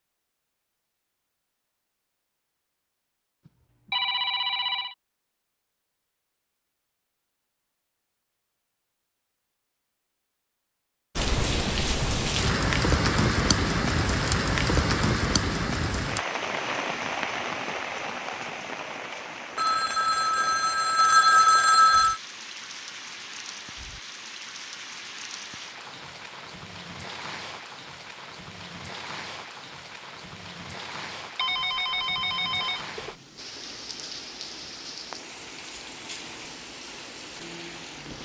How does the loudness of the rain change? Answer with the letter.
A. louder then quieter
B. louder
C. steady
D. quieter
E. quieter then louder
D.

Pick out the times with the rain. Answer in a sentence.
You can hear the rain from 11.2 to 38.2 s.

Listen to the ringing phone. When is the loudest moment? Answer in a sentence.
The volume of the ringing phone peaks at 21 seconds.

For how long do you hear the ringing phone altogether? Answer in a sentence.
The ringing phone can be heard for 6 seconds in total.